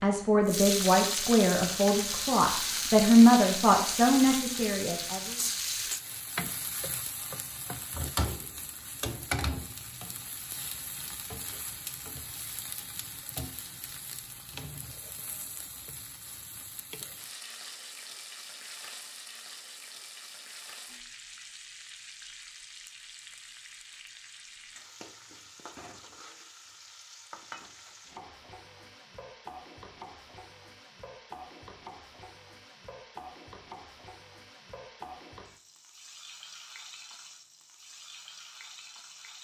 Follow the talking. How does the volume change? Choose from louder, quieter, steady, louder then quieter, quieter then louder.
louder then quieter.